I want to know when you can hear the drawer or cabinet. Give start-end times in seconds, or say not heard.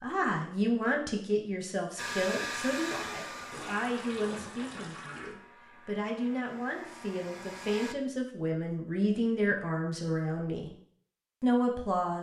not heard.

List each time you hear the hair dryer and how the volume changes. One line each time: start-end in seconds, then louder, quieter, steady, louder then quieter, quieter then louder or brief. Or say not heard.
1.9-8.0 quieter then louder.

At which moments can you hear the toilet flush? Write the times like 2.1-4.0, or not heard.
3.5-5.3.